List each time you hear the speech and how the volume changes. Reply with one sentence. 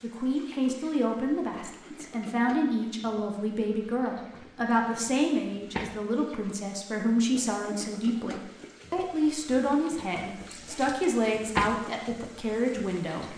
You can hear the speech from 0.0 to 13.3 s, at a steady volume.